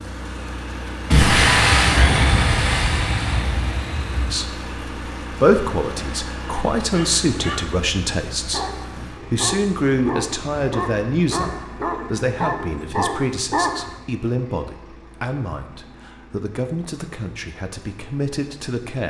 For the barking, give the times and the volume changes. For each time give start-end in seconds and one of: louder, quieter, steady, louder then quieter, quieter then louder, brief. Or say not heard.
6.8-14.0 louder.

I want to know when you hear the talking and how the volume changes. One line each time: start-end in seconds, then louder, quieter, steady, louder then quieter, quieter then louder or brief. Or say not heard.
4.3-19.0 quieter.